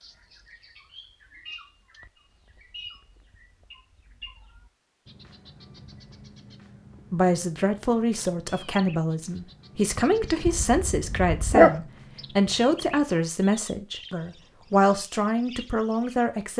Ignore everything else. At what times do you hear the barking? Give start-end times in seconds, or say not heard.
10.4-11.7.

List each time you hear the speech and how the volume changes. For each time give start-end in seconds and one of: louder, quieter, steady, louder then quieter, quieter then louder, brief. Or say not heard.
7.1-16.5 steady.